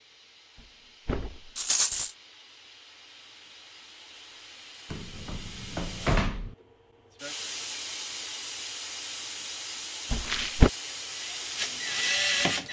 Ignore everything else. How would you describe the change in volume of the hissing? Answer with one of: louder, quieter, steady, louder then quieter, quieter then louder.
louder.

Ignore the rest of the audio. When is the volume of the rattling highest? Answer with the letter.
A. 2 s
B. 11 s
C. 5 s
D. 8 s
A.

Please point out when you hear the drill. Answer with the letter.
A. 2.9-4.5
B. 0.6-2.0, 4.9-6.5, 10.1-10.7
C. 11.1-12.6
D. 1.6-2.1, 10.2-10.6
C.